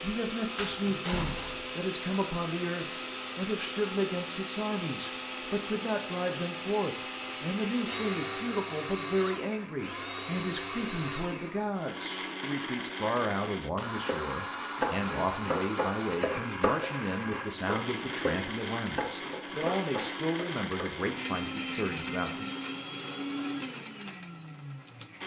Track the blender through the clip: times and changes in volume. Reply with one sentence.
The blender can be heard from 0.0 to 25.2 s, at a steady volume.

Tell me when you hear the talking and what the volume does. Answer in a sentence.
The talking can be heard from 0.0 to 22.5 s, at a steady volume.